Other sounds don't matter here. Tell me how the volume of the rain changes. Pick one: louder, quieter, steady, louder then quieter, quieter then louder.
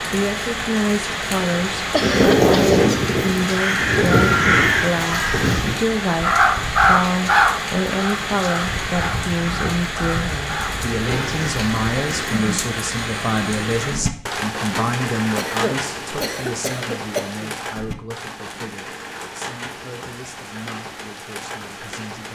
quieter.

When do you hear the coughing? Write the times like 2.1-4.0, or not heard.
1.9-2.7, 15.3-17.5.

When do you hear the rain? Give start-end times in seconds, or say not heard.
0.0-22.2.